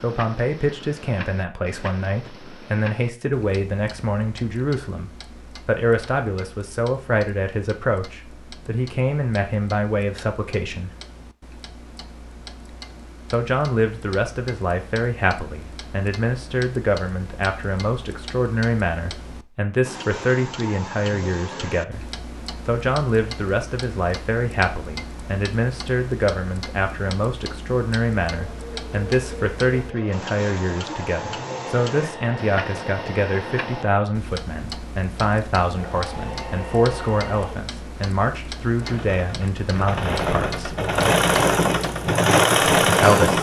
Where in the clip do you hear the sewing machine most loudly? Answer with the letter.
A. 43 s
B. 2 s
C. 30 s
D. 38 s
A.